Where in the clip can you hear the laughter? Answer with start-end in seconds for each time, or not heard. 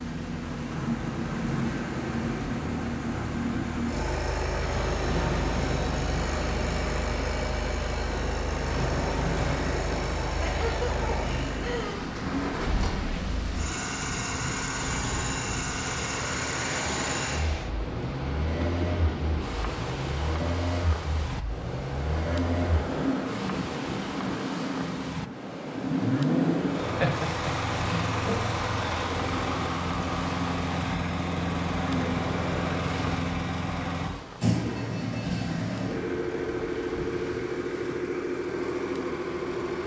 10.4-12.1, 26.9-28.4.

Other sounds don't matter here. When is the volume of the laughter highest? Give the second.
27 s.